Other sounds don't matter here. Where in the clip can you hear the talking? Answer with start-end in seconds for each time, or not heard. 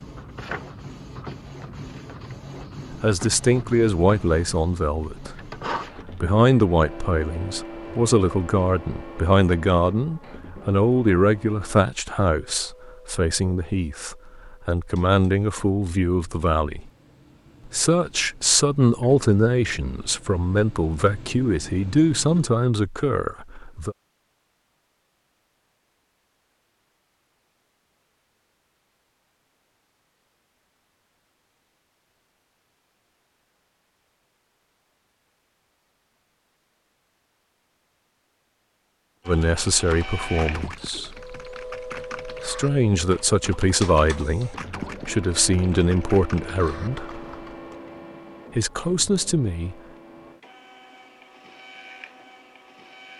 2.9-16.9, 17.6-23.9, 39.2-47.0, 48.5-49.8.